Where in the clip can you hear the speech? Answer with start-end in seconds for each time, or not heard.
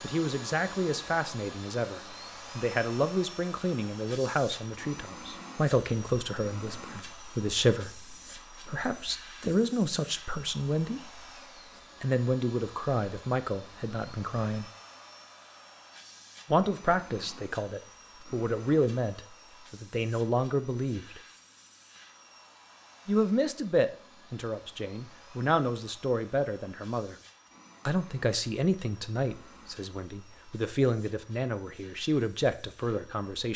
0.0-11.2, 12.0-14.7, 16.5-21.2, 23.1-27.1, 27.9-33.5.